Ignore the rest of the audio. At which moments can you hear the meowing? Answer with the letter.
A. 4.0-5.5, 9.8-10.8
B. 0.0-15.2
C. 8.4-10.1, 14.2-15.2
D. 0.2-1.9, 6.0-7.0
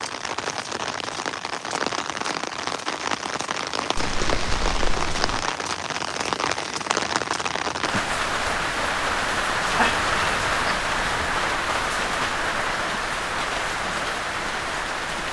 A.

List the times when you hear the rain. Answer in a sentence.
You can hear the rain from 0.0 to 15.2 s.